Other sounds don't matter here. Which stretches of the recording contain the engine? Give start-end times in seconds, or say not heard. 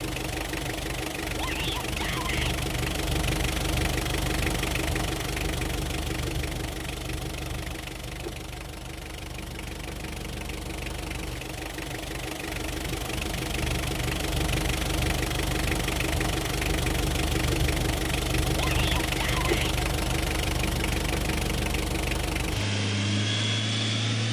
0.0-24.2.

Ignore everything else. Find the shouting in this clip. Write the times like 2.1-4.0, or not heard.
1.4-2.5, 18.6-19.8.